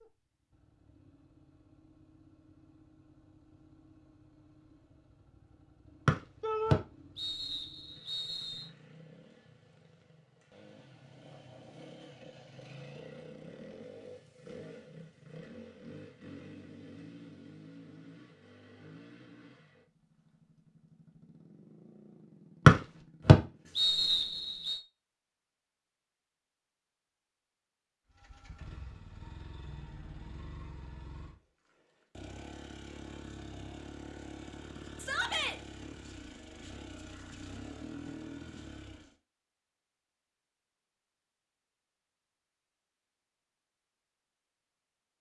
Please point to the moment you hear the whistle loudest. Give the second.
23 s.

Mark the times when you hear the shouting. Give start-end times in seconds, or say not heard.
6.4-6.8, 35.0-35.5.